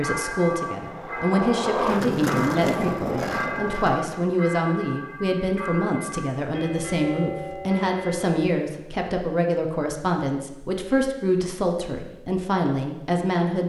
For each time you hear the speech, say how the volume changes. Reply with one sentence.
You can hear the speech from 0.0 to 13.6 s, at a steady volume.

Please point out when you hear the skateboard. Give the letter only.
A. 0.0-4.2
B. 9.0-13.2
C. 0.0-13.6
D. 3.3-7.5
A.